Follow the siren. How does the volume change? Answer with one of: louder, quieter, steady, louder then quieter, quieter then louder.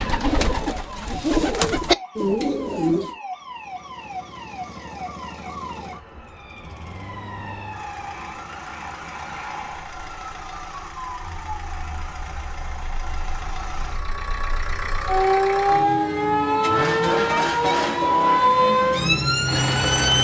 louder.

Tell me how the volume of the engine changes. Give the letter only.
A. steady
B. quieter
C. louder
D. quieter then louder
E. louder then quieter
C.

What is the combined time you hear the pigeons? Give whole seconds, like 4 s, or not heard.
3 s.